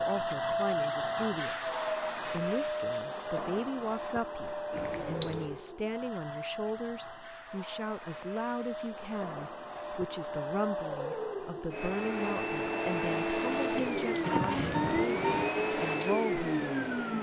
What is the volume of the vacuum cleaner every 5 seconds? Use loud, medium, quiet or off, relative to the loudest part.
loud, medium, loud, loud.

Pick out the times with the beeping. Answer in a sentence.
The beeping can be heard from 4.7 to 5.6 s and from 13.8 to 15.5 s.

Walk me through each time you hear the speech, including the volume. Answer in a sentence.
You can hear the speech from 0.0 to 16.9 s, at a steady volume.